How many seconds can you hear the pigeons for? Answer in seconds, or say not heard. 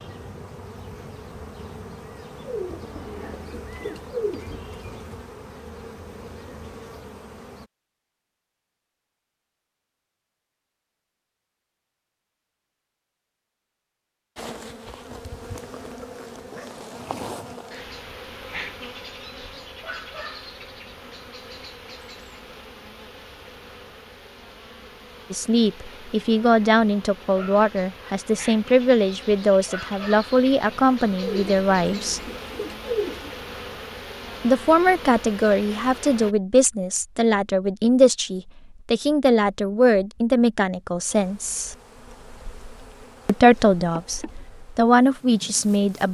5 s.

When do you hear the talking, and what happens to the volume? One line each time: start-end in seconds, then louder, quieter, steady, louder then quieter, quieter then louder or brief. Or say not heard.
25.3-32.2 steady
34.4-41.8 steady
43.2-46.0 brief.